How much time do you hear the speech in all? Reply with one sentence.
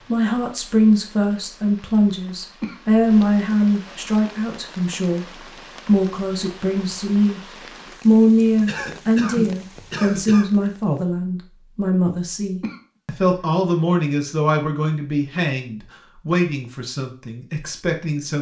You can hear the speech for 17 seconds altogether.